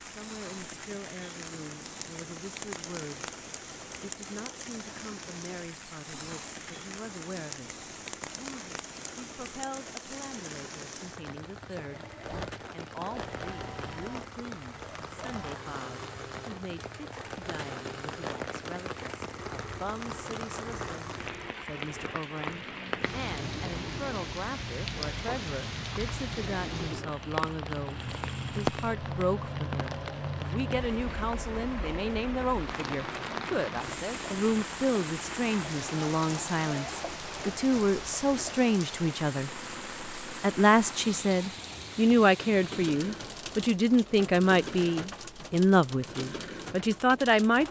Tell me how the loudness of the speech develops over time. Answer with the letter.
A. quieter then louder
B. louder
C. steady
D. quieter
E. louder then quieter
B.